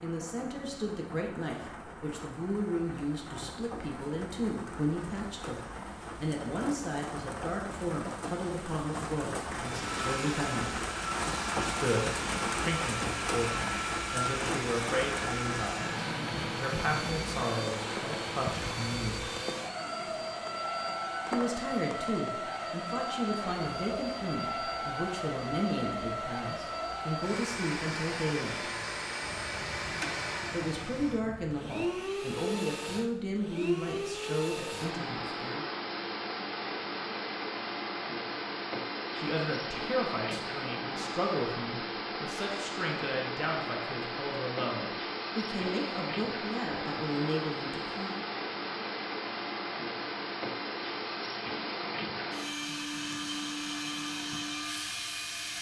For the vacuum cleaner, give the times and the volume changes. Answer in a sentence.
You can hear the vacuum cleaner from 9.5 to 55.5 s, at a steady volume.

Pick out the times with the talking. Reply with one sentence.
The talking can be heard from 0.0 to 10.8 s, from 11.5 to 19.3 s, from 21.2 to 28.6 s, from 30.5 to 35.6 s and from 39.1 to 48.2 s.